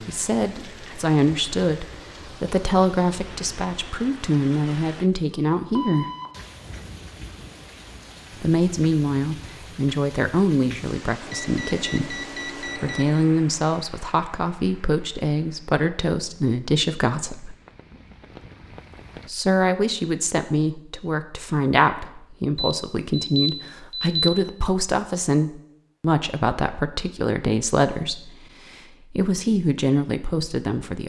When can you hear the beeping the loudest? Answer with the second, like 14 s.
24 s.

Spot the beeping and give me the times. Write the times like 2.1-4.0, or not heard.
5.8-6.3, 11.2-13.2, 22.6-24.3.